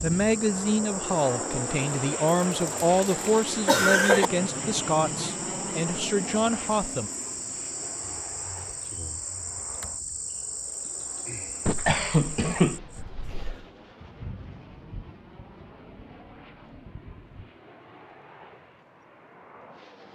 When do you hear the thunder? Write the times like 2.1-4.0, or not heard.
12.8-17.6.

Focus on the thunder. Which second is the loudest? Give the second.
14 s.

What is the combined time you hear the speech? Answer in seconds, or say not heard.
7 s.